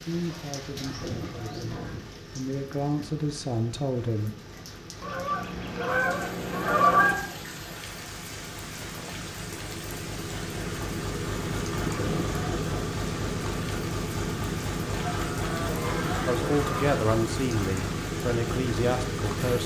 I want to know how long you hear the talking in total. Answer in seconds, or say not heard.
8 s.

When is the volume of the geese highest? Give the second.
7 s.